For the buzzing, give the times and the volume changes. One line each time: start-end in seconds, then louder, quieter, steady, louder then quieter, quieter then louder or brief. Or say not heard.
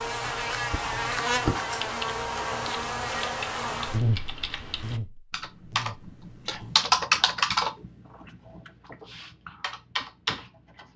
0.0-6.8 quieter.